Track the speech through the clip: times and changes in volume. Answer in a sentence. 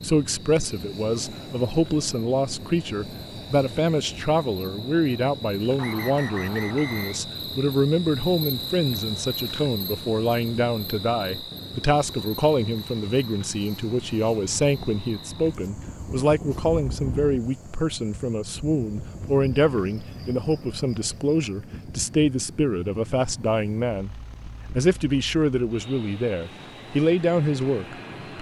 You can hear the speech from 0.0 to 28.3 s, at a steady volume.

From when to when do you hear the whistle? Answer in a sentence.
You can hear the whistle from 5.8 to 7.2 s.